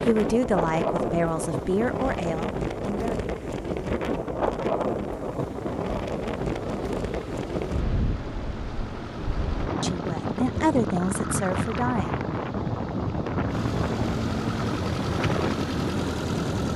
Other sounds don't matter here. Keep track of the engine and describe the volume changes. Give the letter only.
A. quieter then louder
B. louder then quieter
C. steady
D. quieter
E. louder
E.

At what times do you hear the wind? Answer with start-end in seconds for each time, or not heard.
0.0-16.7.